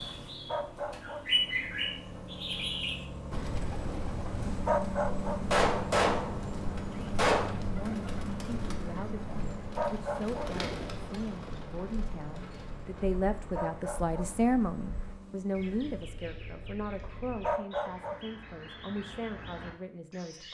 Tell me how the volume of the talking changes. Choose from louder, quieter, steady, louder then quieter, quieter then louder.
louder then quieter.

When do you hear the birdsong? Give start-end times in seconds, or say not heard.
0.0-20.4.